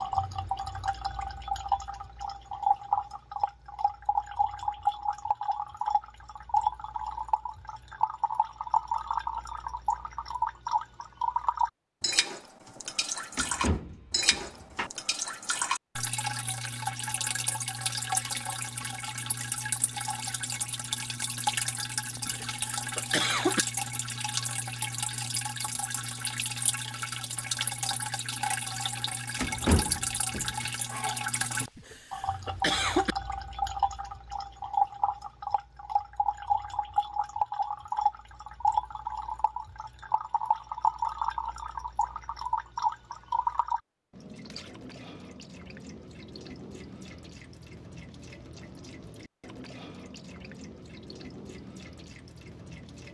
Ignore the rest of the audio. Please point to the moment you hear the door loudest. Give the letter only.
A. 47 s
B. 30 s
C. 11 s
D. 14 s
B.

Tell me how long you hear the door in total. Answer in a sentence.
The door can be heard for 3 seconds in total.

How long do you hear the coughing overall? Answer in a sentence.
The coughing can be heard for 3 seconds in total.